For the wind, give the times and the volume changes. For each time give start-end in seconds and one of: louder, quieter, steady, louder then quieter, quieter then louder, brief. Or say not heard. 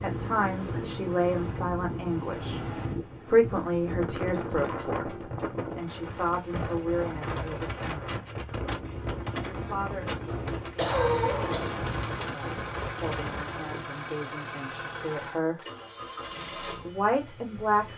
0.0-13.8 steady.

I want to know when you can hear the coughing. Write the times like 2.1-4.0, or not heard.
10.2-11.8.